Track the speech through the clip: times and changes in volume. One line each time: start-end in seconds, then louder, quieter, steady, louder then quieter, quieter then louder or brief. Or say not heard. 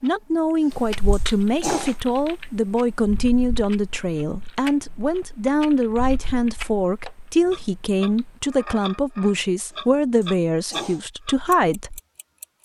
0.0-12.0 steady.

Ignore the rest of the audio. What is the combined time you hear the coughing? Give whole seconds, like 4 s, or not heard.
3 s.